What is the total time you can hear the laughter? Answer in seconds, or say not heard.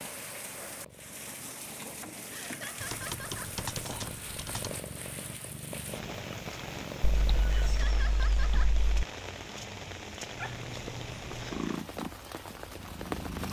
2 s.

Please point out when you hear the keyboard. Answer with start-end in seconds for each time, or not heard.
2.8-4.8, 7.2-9.1.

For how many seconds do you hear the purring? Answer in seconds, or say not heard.
11 s.